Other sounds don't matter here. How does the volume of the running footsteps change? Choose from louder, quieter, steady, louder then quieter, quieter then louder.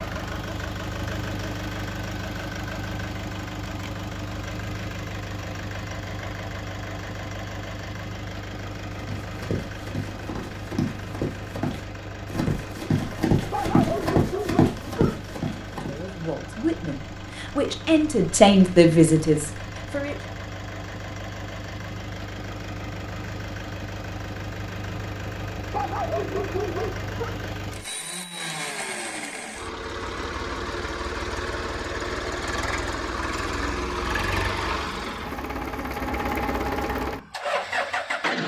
louder.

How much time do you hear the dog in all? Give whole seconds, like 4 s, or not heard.
3 s.